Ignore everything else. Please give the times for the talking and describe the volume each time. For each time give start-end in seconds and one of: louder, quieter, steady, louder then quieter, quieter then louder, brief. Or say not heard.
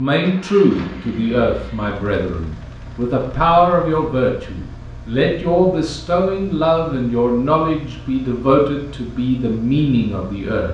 0.0-10.6 steady.